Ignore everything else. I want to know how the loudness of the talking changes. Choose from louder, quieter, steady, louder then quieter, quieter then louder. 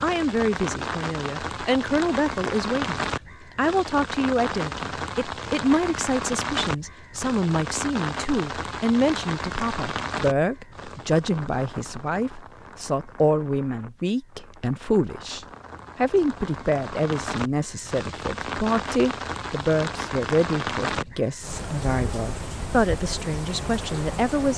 steady.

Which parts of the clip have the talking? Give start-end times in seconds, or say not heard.
0.0-24.5.